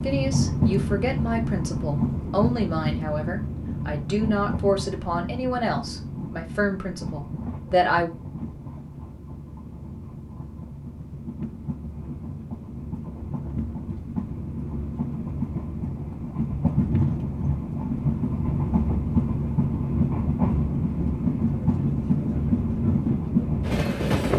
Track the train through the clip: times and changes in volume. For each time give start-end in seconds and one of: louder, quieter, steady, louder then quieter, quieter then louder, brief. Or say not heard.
0.0-24.3 quieter then louder.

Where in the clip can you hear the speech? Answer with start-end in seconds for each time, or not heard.
0.0-8.1.